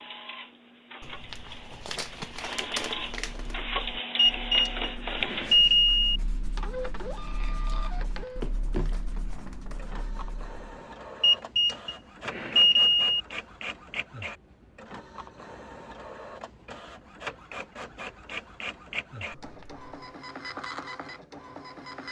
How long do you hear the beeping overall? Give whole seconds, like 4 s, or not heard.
4 s.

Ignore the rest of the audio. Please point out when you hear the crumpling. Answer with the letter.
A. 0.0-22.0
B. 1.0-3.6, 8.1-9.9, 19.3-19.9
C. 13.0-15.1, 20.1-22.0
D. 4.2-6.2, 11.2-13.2
B.